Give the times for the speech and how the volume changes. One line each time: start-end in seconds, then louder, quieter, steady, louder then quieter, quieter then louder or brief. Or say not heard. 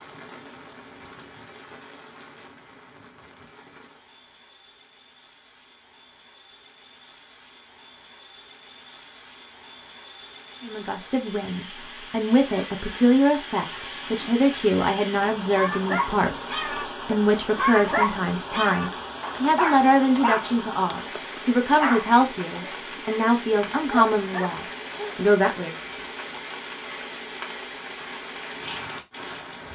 10.6-25.8 steady.